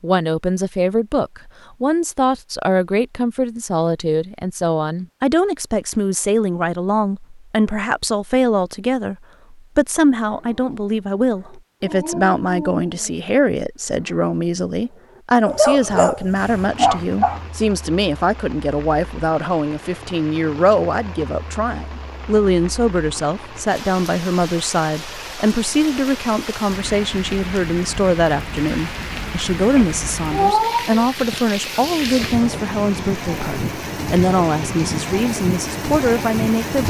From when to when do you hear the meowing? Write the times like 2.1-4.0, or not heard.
29.8-31.4.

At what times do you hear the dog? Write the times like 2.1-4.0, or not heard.
10.2-17.4.